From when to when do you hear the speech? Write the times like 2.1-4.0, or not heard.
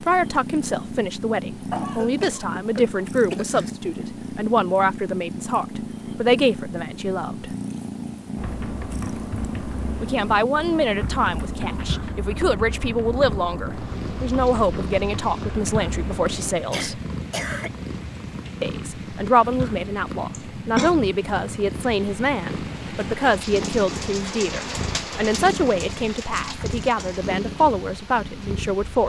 0.0-7.5, 10.0-17.0, 18.6-29.0.